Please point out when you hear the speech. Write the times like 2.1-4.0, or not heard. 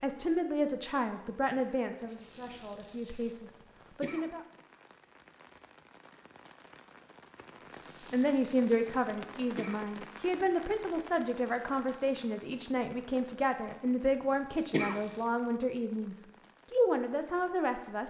0.0-4.5, 8.0-18.0.